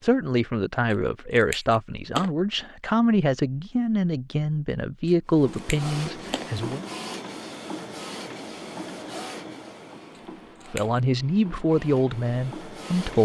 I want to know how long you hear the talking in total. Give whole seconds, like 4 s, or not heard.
9 s.